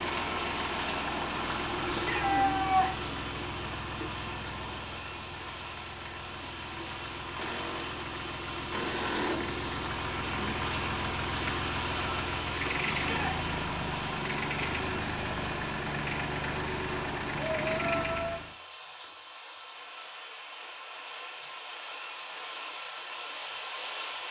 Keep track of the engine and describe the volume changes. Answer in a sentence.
The volume of the engine goes down, then up.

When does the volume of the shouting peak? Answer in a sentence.
The loudest moment of the shouting is at 3 seconds.